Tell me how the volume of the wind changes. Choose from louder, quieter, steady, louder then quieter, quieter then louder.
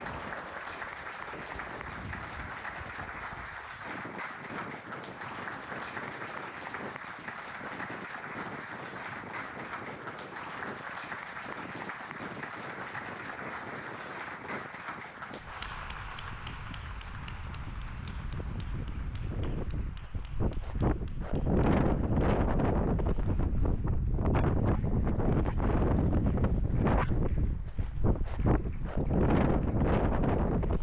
louder.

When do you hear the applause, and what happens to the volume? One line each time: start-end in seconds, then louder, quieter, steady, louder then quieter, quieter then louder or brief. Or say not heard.
0.0-30.7 quieter.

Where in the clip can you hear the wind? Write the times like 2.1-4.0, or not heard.
0.0-30.7.